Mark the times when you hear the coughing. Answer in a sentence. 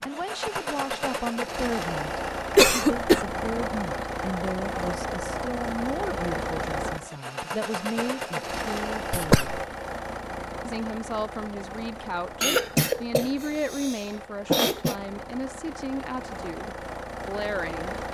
You can hear the coughing from 2.5 to 3.2 s, from 9.1 to 9.6 s and from 12.4 to 14.9 s.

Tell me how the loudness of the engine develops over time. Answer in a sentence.
The volume of the engine goes down.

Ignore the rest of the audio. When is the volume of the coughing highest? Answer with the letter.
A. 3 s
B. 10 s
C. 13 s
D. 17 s
A.